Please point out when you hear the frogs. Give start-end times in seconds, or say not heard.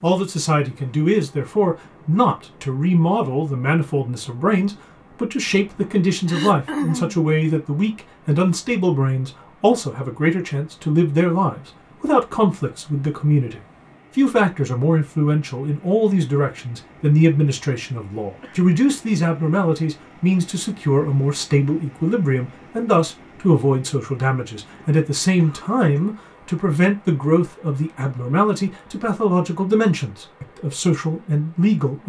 not heard.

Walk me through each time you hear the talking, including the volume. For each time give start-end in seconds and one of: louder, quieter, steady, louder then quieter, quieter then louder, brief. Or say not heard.
0.0-32.0 steady.